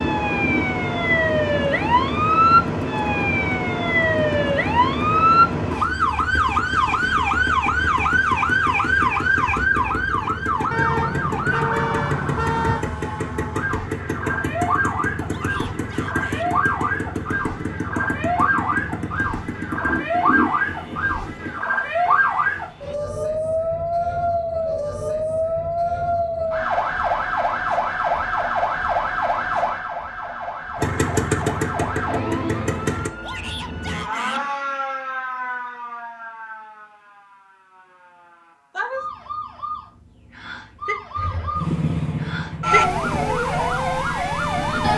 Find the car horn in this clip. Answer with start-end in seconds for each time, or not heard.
10.7-12.8.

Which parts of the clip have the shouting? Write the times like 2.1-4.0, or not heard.
15.2-16.5, 33.2-34.5.